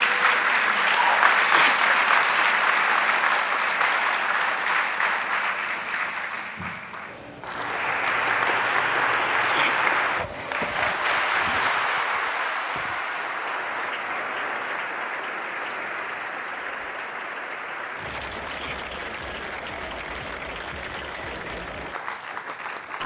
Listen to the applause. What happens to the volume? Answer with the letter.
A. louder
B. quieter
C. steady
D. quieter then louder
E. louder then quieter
B.